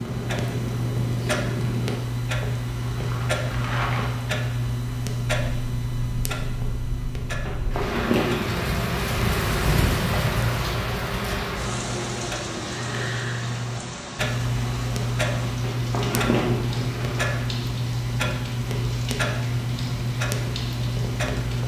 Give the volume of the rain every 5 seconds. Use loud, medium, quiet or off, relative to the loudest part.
medium, loud, loud, medium, medium.